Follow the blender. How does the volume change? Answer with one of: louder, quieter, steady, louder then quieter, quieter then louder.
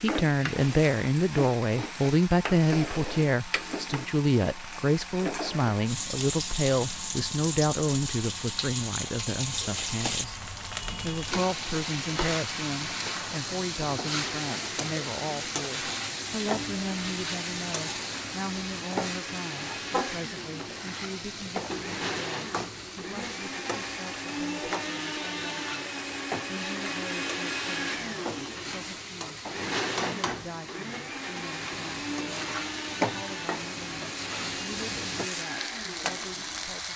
louder.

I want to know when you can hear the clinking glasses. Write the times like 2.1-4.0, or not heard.
not heard.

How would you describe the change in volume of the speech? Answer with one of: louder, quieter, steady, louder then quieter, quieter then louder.
quieter.